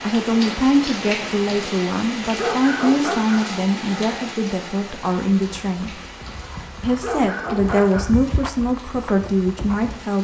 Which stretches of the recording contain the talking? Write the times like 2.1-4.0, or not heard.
0.0-6.0, 6.8-10.2.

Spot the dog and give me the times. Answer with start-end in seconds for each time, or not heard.
2.4-3.5, 7.0-8.2.